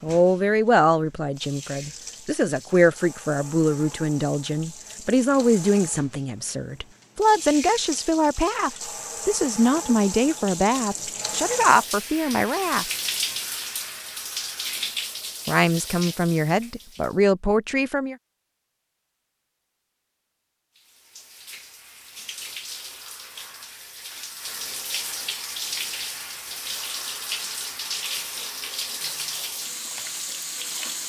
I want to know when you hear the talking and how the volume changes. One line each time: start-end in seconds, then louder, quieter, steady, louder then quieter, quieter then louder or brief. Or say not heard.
0.0-12.8 steady
15.4-18.1 brief.